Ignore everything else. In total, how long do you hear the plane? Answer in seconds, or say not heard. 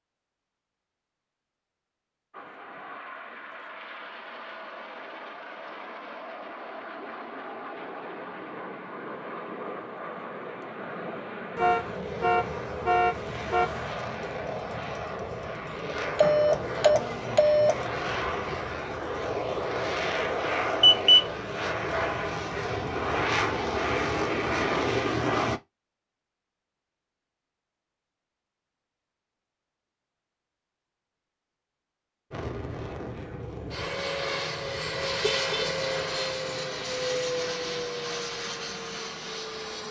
31 s.